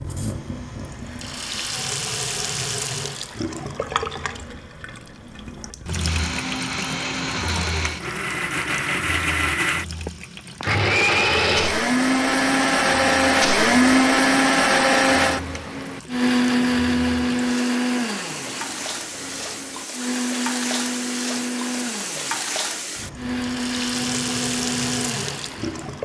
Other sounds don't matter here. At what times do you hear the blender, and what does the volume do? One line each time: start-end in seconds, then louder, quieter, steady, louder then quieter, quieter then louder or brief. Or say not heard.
5.9-25.9 louder then quieter.